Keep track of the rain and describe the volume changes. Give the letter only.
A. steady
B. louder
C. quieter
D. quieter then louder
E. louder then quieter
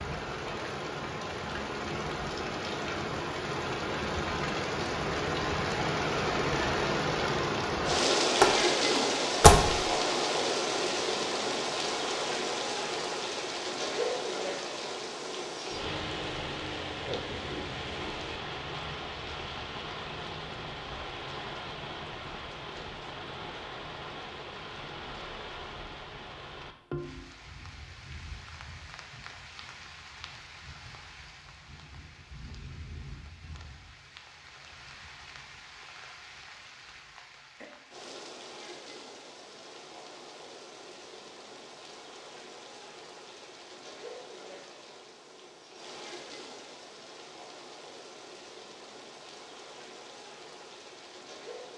C.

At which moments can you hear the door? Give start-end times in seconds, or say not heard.
8.4-9.8.